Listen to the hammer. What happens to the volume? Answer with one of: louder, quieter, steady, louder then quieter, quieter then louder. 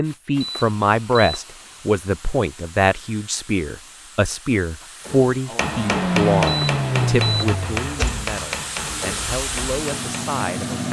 quieter.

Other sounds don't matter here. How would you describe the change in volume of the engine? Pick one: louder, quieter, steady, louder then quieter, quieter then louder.
quieter then louder.